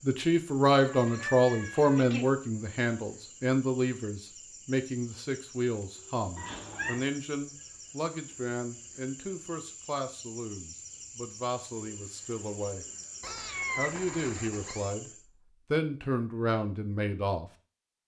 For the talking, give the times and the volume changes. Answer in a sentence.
You can hear the talking from 0.0 to 12.8 s, getting quieter; briefly from 13.8 to 15.1 s; and briefly from 15.7 to 17.4 s.